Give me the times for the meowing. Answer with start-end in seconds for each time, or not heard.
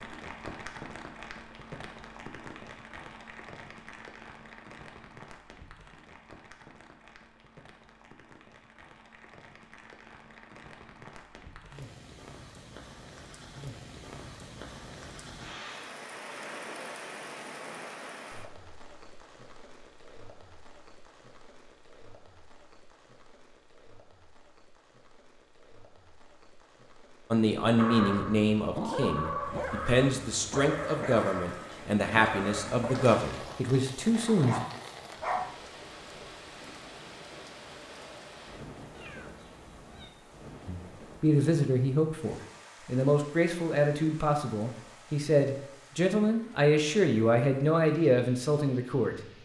38.9-40.1.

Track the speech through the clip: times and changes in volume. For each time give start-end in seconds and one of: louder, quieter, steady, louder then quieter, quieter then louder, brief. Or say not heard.
27.3-34.6 steady
40.6-49.1 steady.